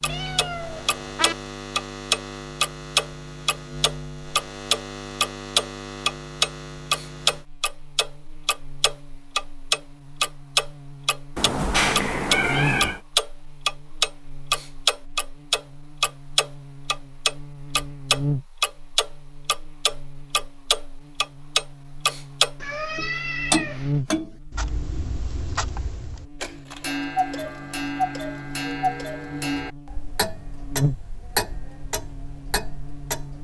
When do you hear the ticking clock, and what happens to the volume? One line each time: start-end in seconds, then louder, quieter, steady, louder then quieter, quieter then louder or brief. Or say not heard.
0.0-33.3 quieter.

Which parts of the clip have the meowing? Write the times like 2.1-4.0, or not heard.
0.1-1.4, 11.3-13.0, 22.6-24.0.